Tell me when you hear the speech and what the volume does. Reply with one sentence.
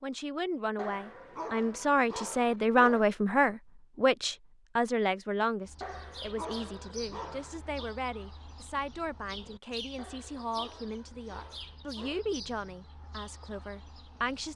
The speech can be heard from 0.0 to 14.5 s, getting quieter.